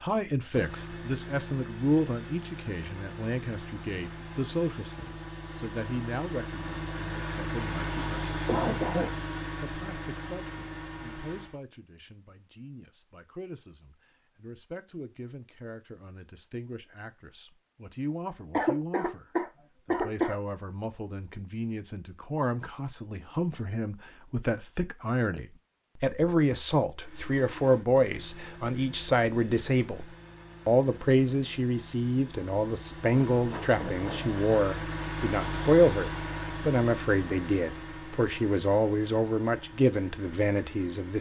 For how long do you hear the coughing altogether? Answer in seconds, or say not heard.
3 s.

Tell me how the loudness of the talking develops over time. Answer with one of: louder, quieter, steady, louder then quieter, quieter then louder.
quieter then louder.